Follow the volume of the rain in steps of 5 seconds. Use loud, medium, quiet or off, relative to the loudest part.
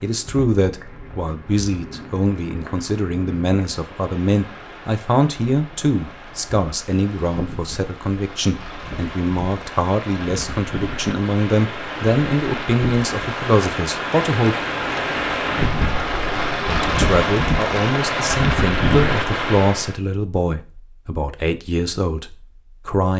quiet, quiet, medium, loud, off.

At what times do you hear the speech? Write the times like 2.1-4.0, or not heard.
0.0-14.7, 16.6-23.1.